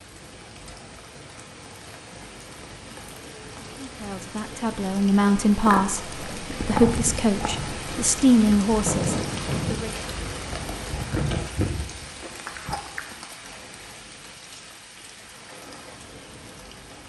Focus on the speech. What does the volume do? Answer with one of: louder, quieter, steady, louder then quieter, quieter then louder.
steady.